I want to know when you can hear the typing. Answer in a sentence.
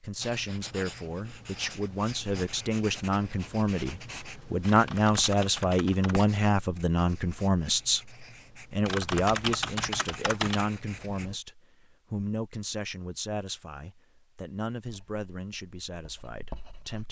You can hear the typing from 4.7 to 6.2 s and from 8.8 to 10.7 s.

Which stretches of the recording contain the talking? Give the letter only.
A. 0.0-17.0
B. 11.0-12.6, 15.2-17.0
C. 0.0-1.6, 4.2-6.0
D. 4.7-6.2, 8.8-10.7
A.